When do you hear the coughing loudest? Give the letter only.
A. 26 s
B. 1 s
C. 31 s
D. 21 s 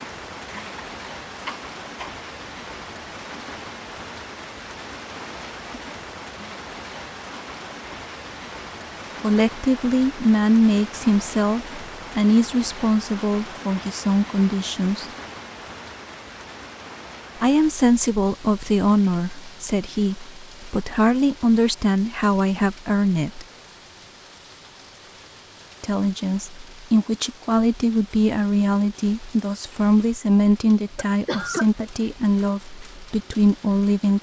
C.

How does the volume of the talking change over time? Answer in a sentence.
The volume of the talking stays about the same.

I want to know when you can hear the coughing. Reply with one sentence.
The coughing can be heard from 0.5 to 2.1 s and from 30.9 to 31.7 s.